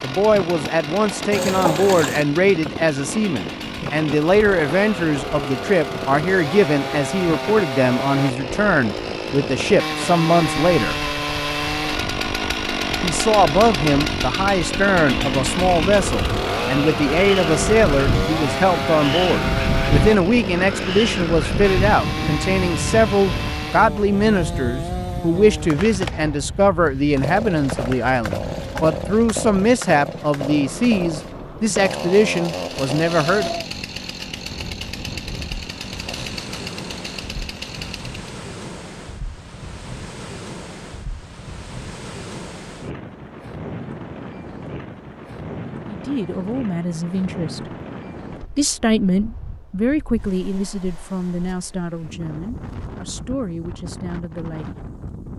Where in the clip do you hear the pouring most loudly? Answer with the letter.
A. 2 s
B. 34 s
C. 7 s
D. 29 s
A.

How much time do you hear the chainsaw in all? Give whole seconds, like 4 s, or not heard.
38 s.